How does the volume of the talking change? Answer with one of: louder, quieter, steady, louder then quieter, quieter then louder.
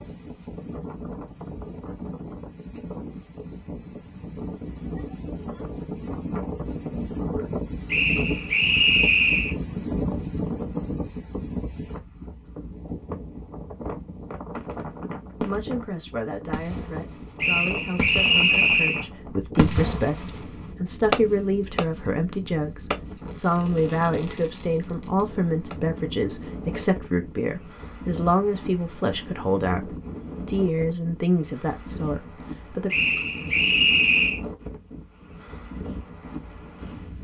louder.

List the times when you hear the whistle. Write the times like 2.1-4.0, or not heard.
7.9-9.6, 17.4-19.1, 32.9-34.4.